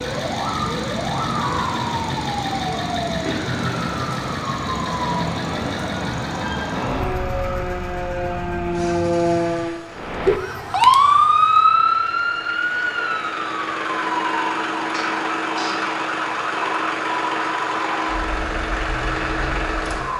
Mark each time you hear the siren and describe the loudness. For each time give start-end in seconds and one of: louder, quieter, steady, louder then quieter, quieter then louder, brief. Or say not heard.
0.0-20.1 louder then quieter.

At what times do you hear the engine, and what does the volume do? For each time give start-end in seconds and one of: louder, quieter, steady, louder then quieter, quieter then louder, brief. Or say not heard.
0.0-20.1 quieter then louder.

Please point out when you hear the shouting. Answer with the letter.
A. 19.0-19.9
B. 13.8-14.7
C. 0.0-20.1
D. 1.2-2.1
D.